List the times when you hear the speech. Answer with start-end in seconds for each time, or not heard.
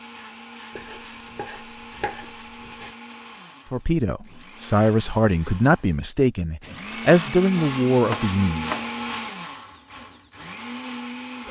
3.7-8.7.